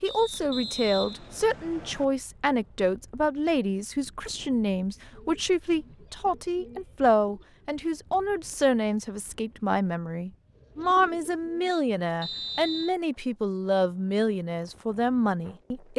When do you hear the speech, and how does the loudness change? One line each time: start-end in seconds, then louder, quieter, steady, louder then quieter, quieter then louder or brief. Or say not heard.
0.0-15.9 steady.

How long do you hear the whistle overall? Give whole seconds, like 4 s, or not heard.
3 s.